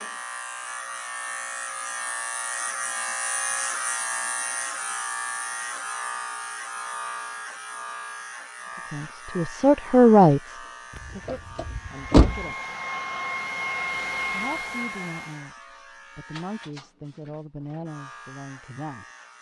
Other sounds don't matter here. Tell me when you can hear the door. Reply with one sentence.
You can hear the door from 10.9 to 12.4 s.